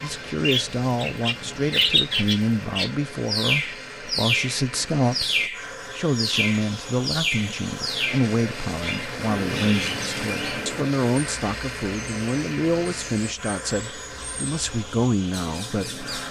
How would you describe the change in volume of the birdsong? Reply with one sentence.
The loudness of the birdsong goes down.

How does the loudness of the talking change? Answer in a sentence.
The loudness of the talking stays about the same.